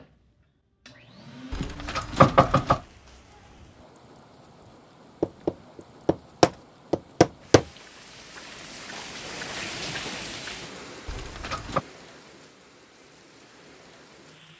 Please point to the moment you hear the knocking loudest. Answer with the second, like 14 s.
2 s.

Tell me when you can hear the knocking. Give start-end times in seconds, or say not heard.
1.5-2.8, 5.2-7.7, 11.1-11.8.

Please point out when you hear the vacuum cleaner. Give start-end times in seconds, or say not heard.
0.0-2.0.